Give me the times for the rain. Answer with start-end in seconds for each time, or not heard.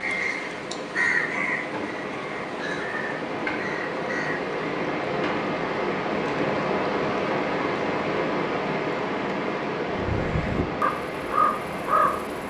0.0-12.4.